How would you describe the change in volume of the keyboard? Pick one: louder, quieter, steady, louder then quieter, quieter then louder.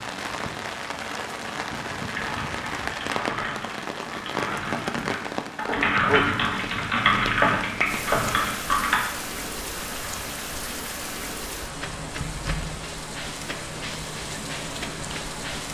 louder.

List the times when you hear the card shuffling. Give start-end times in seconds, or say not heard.
not heard.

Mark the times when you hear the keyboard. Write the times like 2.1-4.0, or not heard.
2.1-9.0.